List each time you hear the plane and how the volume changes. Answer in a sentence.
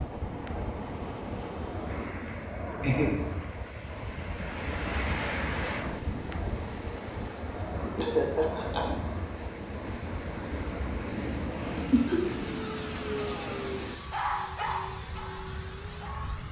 The plane can be heard from 0.0 to 16.4 s, at a steady volume.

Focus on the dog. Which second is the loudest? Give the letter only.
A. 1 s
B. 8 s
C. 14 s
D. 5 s
C.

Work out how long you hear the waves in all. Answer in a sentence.
The waves can be heard for 14 seconds in total.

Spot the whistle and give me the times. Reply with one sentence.
You can't hear the whistle here.